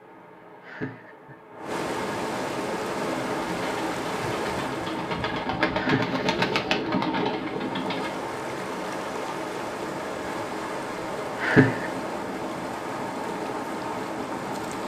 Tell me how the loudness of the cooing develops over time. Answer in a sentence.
The volume of the cooing goes up.